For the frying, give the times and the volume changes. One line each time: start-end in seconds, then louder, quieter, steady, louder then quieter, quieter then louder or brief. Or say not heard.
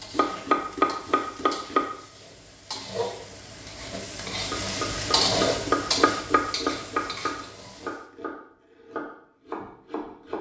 0.0-8.1 louder then quieter.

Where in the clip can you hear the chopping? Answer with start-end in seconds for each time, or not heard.
0.1-1.9, 4.5-10.3.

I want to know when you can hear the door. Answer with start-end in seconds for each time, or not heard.
not heard.